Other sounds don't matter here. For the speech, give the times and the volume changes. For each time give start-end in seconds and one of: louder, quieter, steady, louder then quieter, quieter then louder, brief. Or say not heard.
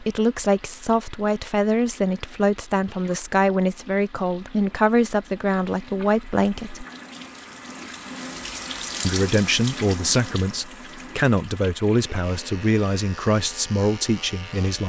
0.0-6.8 steady
9.0-14.8 steady.